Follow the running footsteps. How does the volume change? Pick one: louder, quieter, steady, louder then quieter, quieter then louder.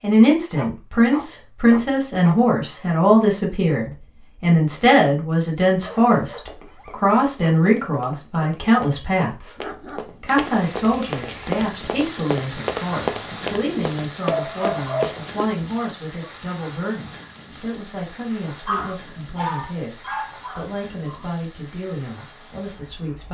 louder.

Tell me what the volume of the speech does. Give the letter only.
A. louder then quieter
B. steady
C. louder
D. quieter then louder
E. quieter
E.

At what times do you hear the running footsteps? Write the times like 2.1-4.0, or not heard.
6.2-15.5.